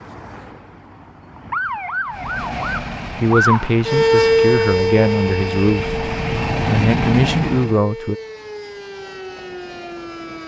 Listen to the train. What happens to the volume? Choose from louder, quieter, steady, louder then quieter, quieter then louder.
quieter then louder.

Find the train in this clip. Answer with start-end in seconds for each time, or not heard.
2.0-7.8.